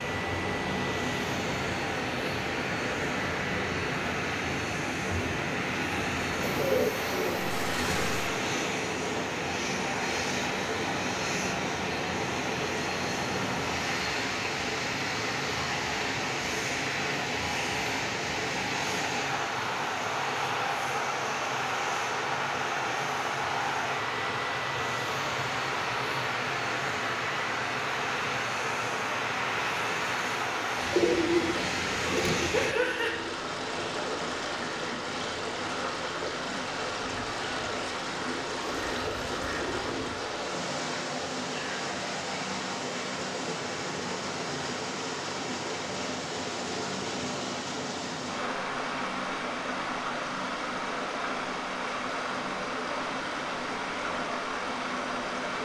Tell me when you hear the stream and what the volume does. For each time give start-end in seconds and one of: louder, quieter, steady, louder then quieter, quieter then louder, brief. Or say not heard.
0.0-55.6 steady.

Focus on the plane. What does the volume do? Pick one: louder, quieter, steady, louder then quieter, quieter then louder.
steady.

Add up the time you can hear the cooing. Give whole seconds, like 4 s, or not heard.
5 s.